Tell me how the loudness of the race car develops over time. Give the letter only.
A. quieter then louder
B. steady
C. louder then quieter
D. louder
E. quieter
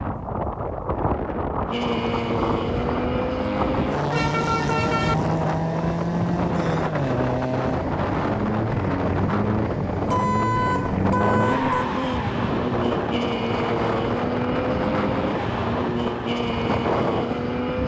B.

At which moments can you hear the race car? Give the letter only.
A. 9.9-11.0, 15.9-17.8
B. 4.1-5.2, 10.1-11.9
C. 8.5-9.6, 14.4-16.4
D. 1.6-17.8
D.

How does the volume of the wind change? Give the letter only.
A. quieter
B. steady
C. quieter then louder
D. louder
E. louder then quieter
B.